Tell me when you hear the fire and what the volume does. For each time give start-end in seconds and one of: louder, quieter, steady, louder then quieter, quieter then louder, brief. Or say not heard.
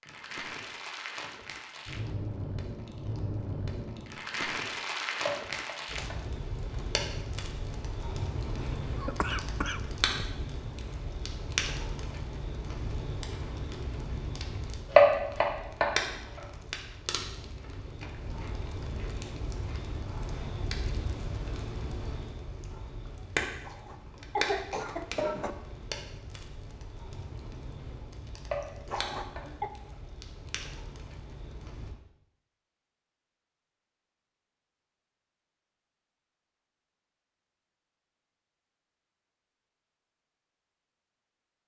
0.0-31.9 quieter.